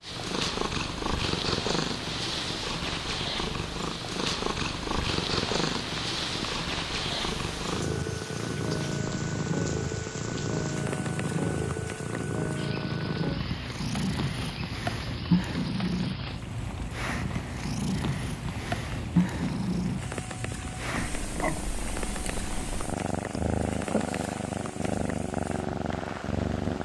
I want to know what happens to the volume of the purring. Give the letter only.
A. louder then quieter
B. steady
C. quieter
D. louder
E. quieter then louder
B.